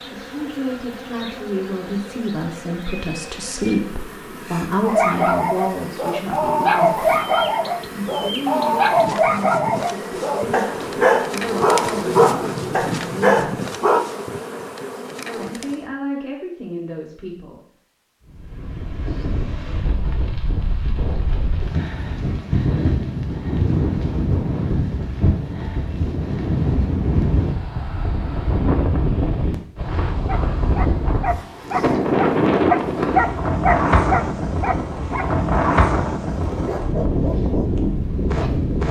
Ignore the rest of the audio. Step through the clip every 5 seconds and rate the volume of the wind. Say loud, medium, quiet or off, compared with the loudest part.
off, off, off, medium, loud, loud, loud, loud.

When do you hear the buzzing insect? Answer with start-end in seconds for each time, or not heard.
0.0-15.9.